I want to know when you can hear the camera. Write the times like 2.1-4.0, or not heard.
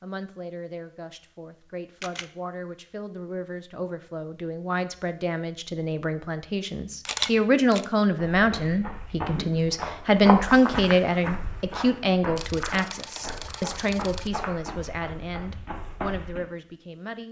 1.6-2.3, 7.0-7.8, 12.3-14.3.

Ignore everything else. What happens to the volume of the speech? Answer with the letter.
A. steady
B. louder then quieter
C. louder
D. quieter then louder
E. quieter
B.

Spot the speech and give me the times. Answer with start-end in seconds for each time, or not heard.
0.0-17.2.